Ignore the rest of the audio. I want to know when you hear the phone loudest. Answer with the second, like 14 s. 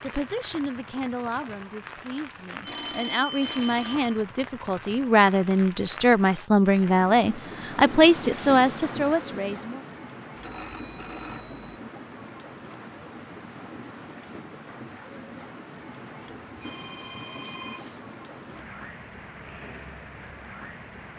3 s.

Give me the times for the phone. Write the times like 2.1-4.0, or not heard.
2.6-4.2, 10.3-11.6, 16.6-18.0.